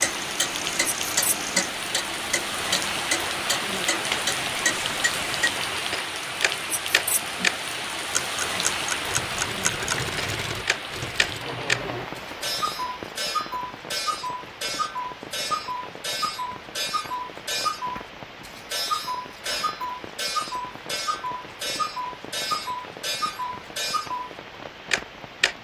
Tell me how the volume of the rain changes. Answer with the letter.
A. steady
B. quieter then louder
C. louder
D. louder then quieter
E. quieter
E.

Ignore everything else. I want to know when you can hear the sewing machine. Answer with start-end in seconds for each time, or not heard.
0.1-1.8, 8.9-12.1.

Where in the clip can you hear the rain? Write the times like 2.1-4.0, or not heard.
0.0-25.5.